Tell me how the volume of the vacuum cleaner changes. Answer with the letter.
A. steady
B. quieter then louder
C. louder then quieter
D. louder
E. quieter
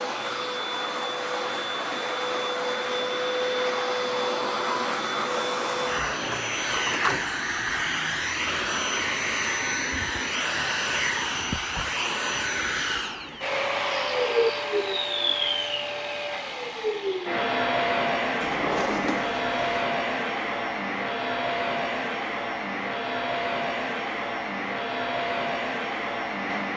A.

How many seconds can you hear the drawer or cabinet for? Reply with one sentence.
The drawer or cabinet can be heard for 3 seconds in total.